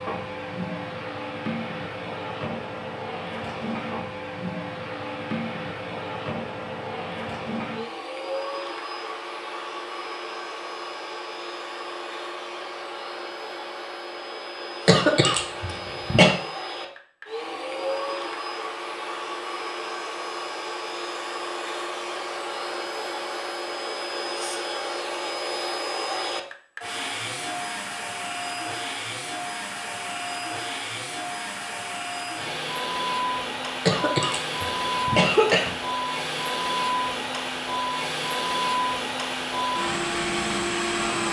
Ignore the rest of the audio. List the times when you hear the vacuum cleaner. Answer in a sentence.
You can hear the vacuum cleaner from 0.0 to 41.2 s.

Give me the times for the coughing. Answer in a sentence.
The coughing can be heard from 14.8 to 16.4 s and from 33.9 to 35.8 s.